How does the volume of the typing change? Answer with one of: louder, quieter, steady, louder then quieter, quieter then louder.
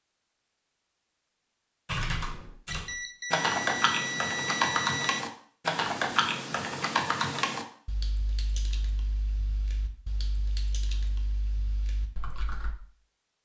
quieter.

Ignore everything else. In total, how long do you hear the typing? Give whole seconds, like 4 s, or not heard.
11 s.